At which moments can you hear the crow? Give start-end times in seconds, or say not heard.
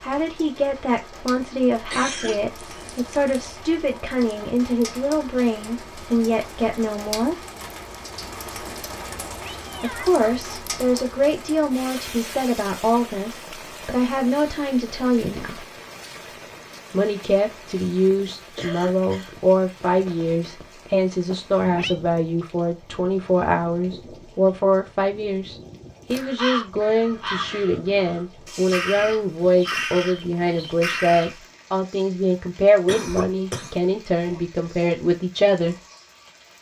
26.1-31.4.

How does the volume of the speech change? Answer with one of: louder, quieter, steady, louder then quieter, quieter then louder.
steady.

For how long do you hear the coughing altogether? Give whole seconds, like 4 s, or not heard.
4 s.